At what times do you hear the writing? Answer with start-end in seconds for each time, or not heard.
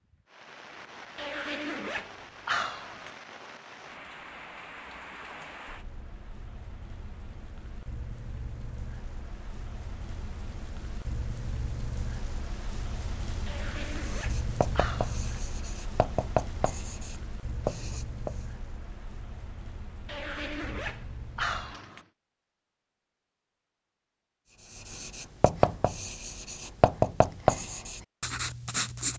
13.9-18.4, 24.7-29.1.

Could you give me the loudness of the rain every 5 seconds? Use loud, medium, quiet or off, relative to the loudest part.
medium, medium, loud, loud, medium, off.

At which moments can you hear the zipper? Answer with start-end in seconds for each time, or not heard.
1.1-3.1, 13.4-15.2, 20.1-22.1.